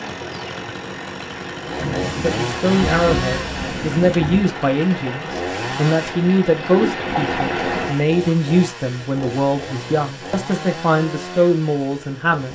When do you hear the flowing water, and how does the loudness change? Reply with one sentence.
You can hear the flowing water from 0.0 to 8.1 s, getting louder.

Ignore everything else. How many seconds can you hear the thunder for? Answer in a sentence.
You can hear the thunder for 3 seconds altogether.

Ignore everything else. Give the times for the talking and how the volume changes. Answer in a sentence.
You can hear the talking from 2.2 to 12.5 s, at a steady volume.